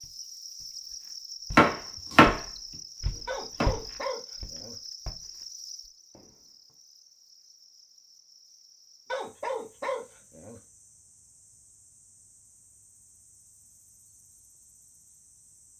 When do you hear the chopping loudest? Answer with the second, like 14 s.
2 s.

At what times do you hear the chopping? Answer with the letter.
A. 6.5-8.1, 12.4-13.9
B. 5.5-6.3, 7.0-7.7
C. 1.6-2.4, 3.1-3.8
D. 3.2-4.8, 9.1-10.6
C.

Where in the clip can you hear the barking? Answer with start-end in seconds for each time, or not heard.
3.2-4.8, 9.1-10.6.